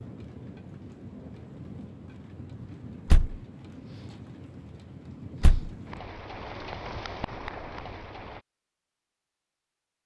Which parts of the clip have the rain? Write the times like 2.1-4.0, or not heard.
0.0-8.4.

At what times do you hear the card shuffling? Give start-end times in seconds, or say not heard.
not heard.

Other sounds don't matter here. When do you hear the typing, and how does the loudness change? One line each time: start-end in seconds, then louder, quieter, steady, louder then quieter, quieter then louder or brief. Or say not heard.
not heard.